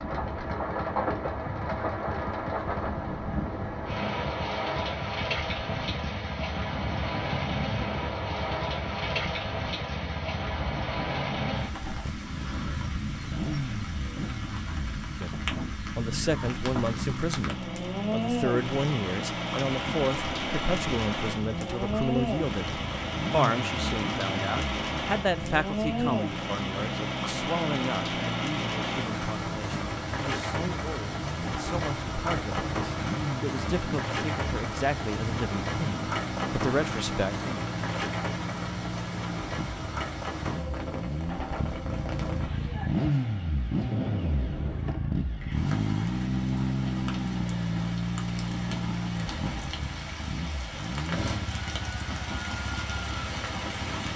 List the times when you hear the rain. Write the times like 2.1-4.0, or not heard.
0.0-54.1.